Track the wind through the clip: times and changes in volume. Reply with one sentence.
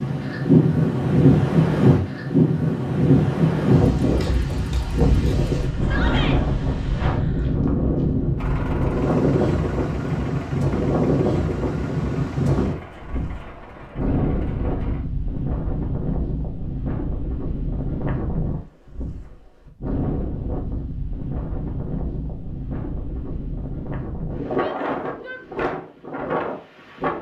You can hear the wind from 0.0 to 27.1 s, getting quieter.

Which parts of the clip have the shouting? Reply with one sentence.
The shouting can be heard from 5.8 to 6.4 s and from 24.6 to 25.4 s.